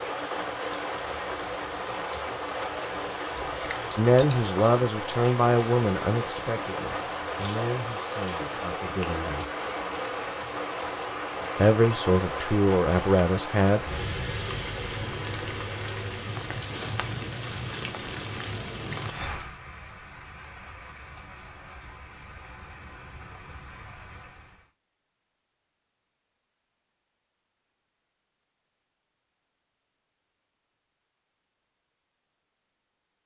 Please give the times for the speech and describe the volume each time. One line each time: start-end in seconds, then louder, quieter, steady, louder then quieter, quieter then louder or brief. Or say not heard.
4.0-9.4 quieter
11.6-13.8 brief.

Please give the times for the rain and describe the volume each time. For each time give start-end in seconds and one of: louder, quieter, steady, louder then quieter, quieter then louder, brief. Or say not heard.
0.0-24.7 quieter.